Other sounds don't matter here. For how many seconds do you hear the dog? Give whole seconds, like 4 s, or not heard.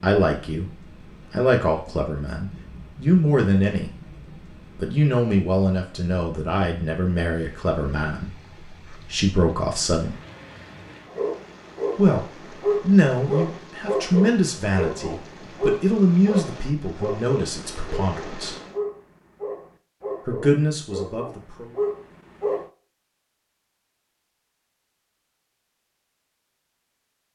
12 s.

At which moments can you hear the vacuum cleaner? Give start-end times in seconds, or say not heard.
not heard.